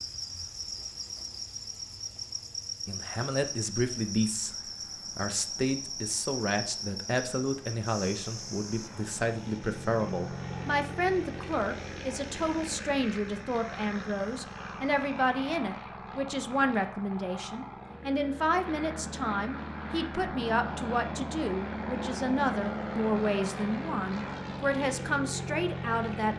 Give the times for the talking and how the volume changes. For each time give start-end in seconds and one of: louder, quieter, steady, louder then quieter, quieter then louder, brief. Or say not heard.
2.9-26.3 steady.